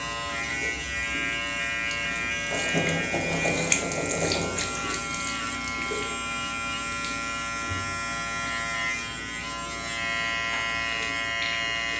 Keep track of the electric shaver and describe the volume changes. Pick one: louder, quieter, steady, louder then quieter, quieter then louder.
steady.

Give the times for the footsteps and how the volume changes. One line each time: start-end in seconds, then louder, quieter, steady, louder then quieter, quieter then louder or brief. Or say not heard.
not heard.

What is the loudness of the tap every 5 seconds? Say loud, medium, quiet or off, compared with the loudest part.
loud, medium, medium.